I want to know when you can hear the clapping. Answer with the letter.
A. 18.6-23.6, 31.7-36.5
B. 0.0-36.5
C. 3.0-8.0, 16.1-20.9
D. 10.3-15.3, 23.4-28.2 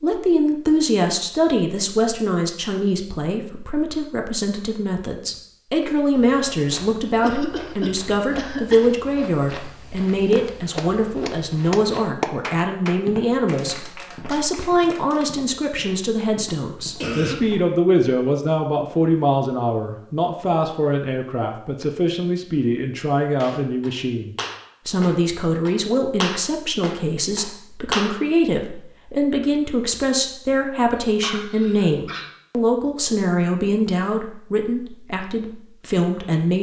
D.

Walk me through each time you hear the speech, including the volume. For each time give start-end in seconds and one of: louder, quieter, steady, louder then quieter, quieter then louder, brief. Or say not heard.
0.0-36.5 steady.